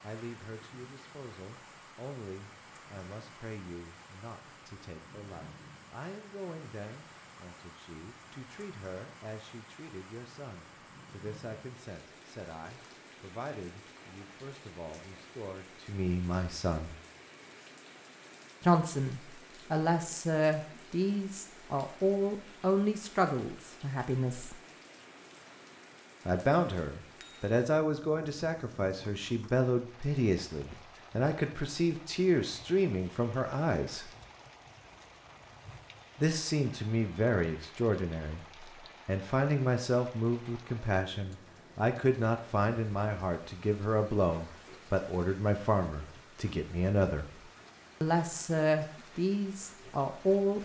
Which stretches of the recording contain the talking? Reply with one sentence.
You can hear the talking from 0.0 to 16.9 s, from 18.6 to 24.6 s, from 26.2 to 34.1 s, from 36.1 to 47.3 s and from 48.0 to 50.5 s.